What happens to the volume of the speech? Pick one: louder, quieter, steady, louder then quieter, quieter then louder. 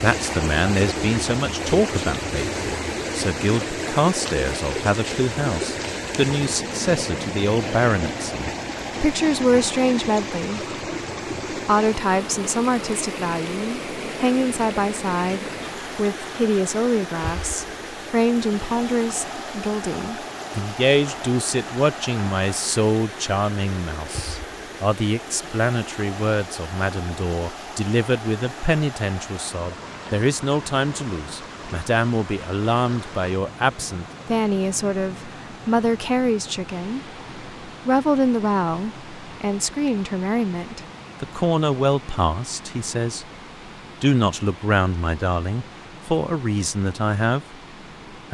steady.